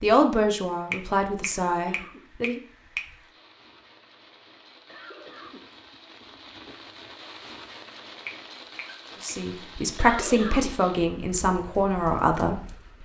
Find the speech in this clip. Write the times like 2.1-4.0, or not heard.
0.0-2.6, 9.2-12.6.